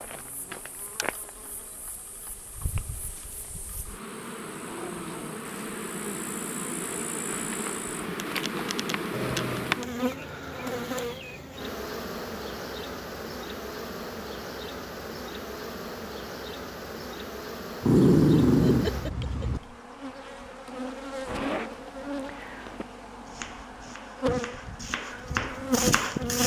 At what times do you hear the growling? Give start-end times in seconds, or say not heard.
4.5-5.5, 9.1-9.8, 17.8-19.6.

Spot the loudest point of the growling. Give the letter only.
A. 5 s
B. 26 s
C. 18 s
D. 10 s
C.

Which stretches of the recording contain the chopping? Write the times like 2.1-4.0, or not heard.
23.2-26.4.